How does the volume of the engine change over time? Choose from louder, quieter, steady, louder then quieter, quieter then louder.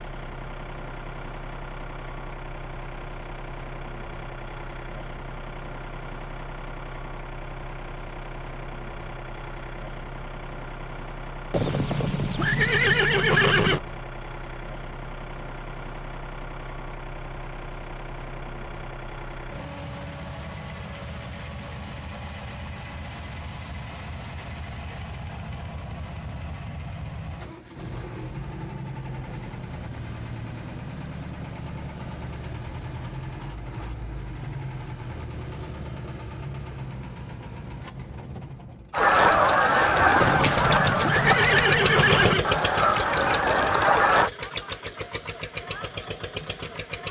louder.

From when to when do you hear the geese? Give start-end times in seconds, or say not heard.
38.9-44.3.